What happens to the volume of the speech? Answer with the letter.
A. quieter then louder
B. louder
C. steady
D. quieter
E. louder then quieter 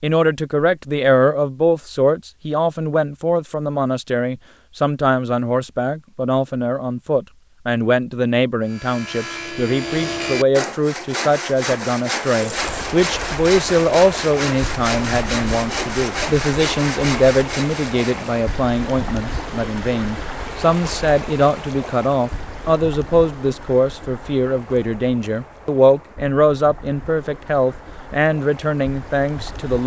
C.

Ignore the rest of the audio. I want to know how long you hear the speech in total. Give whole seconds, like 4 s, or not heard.
30 s.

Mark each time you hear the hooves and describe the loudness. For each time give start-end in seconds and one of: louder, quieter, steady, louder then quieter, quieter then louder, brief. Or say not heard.
not heard.